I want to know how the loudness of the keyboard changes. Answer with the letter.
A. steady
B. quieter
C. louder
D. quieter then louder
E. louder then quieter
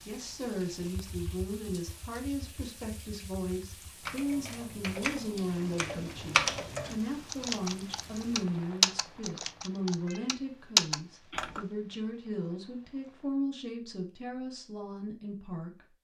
C.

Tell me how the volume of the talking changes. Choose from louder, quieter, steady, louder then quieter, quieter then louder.
steady.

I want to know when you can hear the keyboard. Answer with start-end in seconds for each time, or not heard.
0.8-11.7.